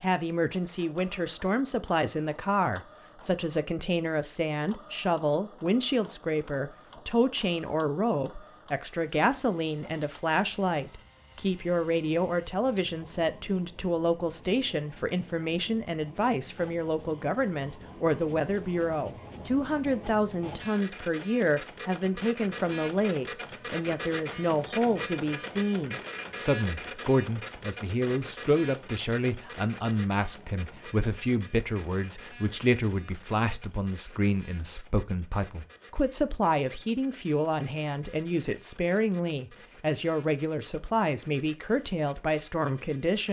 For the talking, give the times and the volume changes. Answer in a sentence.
The talking can be heard from 0.0 to 43.2 s, at a steady volume.